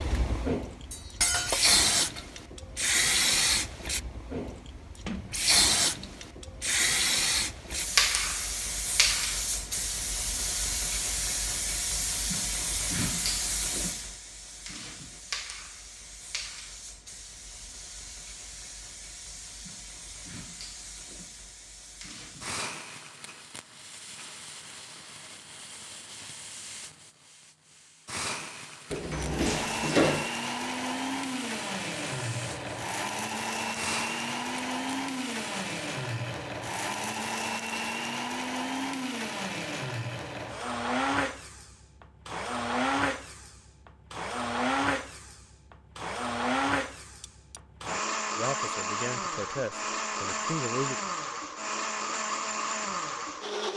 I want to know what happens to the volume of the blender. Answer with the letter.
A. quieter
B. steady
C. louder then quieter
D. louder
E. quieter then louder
B.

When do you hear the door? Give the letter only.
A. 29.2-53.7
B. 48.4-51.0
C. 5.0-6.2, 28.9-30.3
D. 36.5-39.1
C.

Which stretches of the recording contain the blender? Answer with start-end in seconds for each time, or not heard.
29.2-53.7.